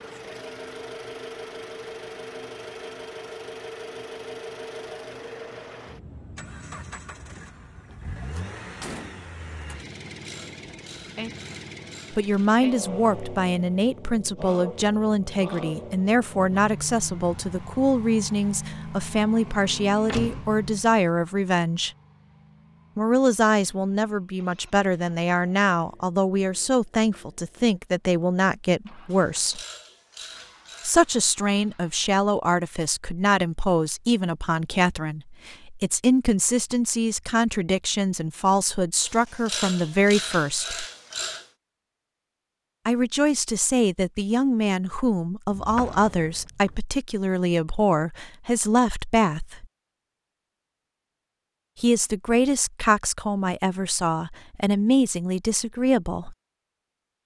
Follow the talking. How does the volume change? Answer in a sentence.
The volume of the talking stays about the same.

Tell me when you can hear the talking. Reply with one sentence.
You can hear the talking from 12.1 to 21.9 s, from 22.9 to 29.6 s, from 30.8 to 40.9 s, from 42.9 to 49.6 s and from 51.8 to 56.4 s.